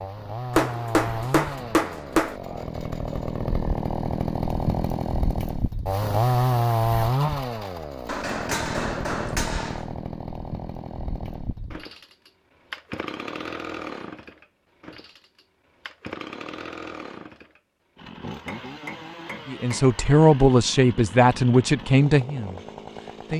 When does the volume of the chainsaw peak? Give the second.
7 s.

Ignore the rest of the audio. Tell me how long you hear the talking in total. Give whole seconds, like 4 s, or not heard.
4 s.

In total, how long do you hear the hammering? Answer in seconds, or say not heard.
5 s.